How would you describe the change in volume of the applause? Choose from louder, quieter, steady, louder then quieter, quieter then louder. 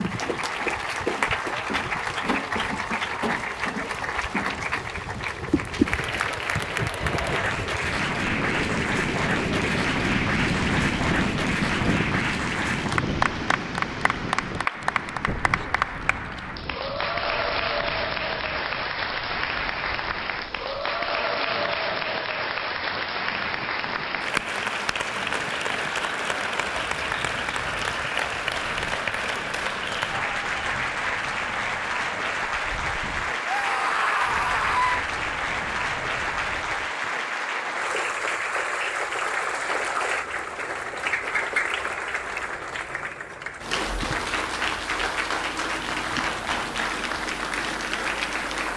steady.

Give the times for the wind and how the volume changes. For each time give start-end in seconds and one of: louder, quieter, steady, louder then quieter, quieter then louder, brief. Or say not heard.
0.0-37.0 louder then quieter.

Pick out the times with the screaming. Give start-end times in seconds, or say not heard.
33.5-35.0.